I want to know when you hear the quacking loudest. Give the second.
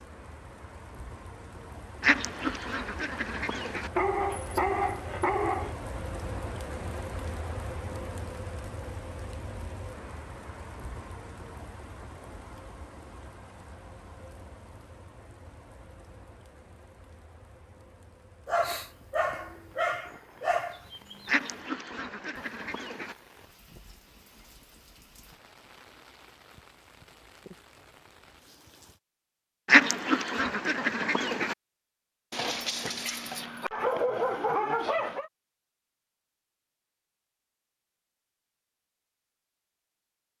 30 s.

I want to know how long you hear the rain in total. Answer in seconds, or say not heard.
29 s.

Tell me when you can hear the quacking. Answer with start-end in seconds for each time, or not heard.
2.0-3.9, 21.2-23.1, 29.6-31.6.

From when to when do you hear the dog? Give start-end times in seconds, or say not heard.
4.0-5.8, 18.4-21.3, 32.3-35.3.